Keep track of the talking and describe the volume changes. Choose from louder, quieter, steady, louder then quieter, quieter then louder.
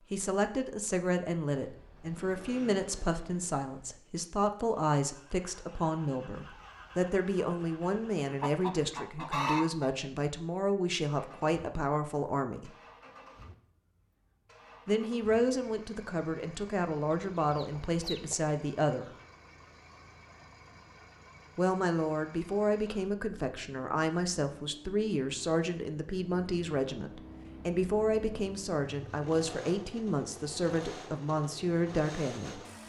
steady.